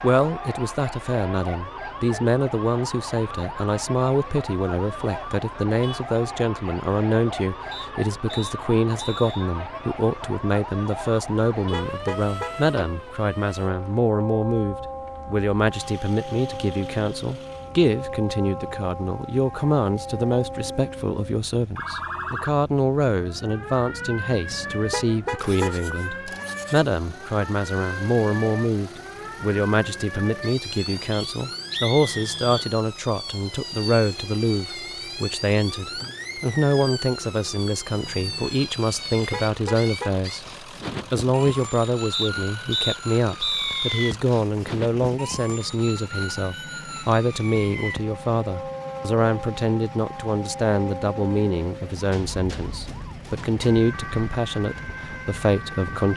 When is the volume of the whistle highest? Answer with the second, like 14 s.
44 s.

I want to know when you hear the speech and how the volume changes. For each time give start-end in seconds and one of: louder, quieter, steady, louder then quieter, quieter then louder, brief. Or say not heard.
0.0-40.5 steady
41.1-56.1 steady.